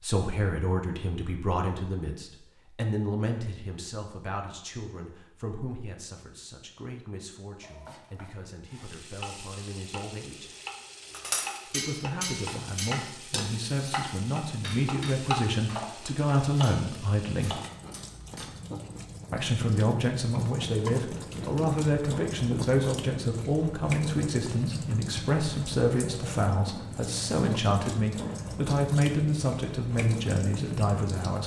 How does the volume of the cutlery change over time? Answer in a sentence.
The volume of the cutlery goes down.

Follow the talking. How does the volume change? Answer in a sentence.
The volume of the talking goes down, then up.